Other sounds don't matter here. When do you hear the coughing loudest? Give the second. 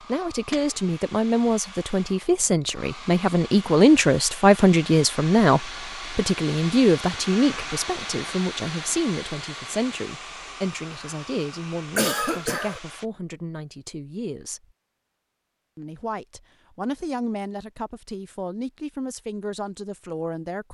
12 s.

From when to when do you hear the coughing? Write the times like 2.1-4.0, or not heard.
0.1-0.8, 11.9-12.8.